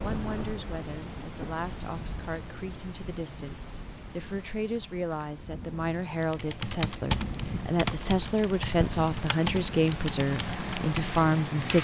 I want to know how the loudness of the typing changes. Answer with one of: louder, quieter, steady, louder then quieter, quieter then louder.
quieter.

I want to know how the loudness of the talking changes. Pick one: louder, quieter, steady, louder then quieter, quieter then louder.
louder.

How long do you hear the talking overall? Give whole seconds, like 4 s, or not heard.
12 s.